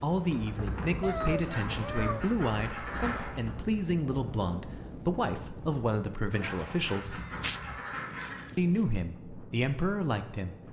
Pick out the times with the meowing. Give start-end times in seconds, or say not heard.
1.0-2.3, 7.1-8.6.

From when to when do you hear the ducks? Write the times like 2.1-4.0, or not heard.
1.4-3.3, 6.3-8.4.